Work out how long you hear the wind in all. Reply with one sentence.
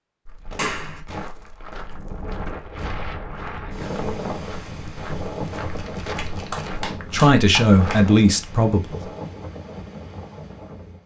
The wind can be heard for 9 seconds in total.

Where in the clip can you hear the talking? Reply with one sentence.
The talking can be heard from 7.1 to 9.1 s.